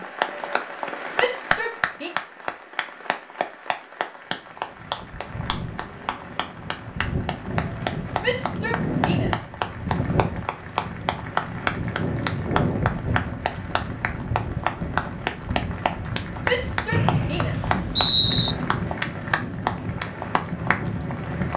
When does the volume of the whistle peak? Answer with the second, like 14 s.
18 s.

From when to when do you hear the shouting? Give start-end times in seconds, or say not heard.
1.1-2.1, 8.2-9.4, 16.4-17.7.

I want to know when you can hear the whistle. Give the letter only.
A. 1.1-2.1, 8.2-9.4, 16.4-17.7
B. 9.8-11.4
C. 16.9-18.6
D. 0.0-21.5
C.